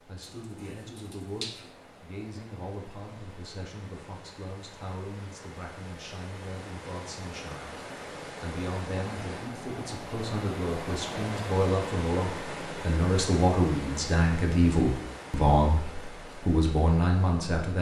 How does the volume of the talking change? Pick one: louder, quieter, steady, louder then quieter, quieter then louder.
louder.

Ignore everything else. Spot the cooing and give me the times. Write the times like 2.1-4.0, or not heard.
0.2-1.7.